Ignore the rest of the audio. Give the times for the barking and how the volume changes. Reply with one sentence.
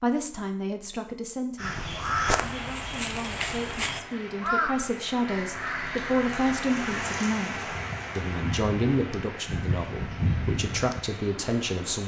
The barking can't be heard in this clip.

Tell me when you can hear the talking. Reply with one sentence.
You can hear the talking from 0.0 to 12.0 s.